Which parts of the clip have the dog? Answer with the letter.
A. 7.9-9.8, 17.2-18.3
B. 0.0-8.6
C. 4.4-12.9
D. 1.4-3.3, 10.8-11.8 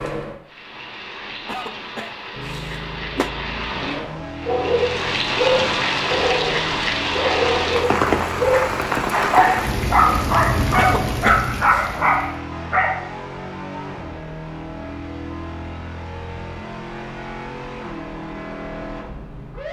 C.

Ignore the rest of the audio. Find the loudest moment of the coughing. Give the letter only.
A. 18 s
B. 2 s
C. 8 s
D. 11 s
D.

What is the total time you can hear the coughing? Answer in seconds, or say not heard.
3 s.